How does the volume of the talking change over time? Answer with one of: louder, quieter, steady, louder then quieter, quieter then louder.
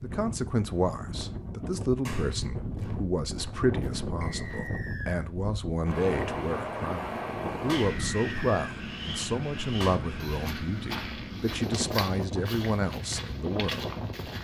steady.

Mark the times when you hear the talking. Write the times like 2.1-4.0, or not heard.
0.0-13.8.